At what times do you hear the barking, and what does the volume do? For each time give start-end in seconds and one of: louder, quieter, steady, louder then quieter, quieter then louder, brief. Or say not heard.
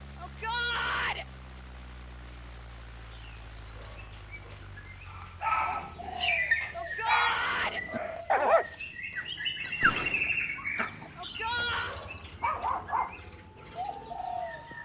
5.1-14.7 quieter.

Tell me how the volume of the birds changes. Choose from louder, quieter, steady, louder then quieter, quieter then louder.
louder then quieter.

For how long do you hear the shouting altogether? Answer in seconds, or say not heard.
3 s.